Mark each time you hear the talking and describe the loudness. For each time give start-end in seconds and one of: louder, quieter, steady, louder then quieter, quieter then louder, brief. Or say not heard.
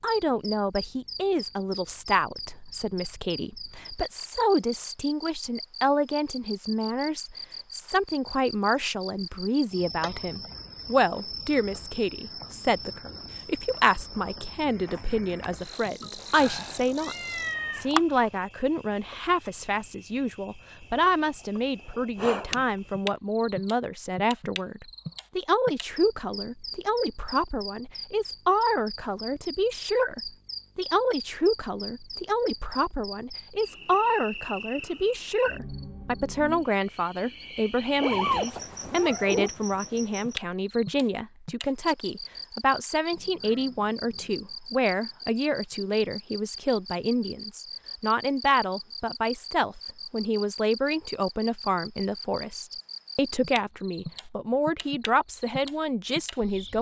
0.0-17.1 steady
17.8-56.7 steady.